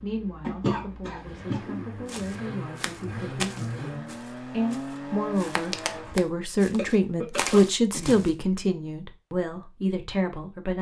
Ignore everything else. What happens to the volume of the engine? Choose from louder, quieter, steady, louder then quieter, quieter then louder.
louder.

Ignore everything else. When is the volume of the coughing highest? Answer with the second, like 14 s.
1 s.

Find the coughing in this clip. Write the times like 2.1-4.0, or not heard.
0.4-1.9, 6.8-8.2.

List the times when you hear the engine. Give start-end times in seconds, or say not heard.
0.0-6.2.